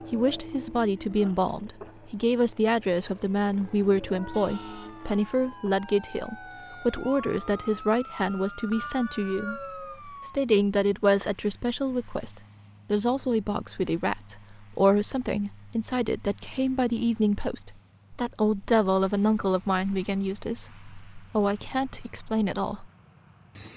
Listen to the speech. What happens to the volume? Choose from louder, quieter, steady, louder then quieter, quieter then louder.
steady.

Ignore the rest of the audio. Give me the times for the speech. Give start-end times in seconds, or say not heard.
0.1-22.9.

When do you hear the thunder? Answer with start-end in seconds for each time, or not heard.
not heard.